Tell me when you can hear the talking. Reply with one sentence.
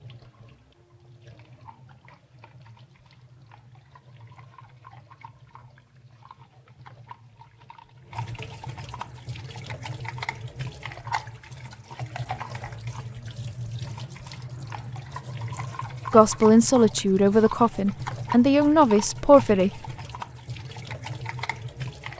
The talking can be heard from 16.1 to 19.7 s.